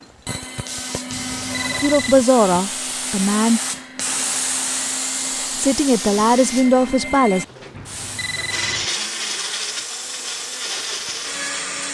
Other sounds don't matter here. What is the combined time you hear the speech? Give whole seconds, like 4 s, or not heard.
4 s.